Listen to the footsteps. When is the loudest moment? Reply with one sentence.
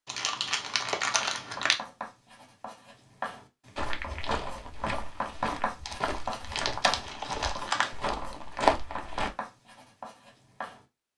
The loudest moment of the footsteps is at 9 seconds.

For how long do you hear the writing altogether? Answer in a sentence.
You can hear the writing for 10 seconds altogether.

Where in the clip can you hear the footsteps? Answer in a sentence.
You can hear the footsteps from 3.8 to 9.3 s.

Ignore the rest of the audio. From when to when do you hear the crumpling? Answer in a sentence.
The crumpling can be heard from 0.1 to 1.8 s and from 5.8 to 8.0 s.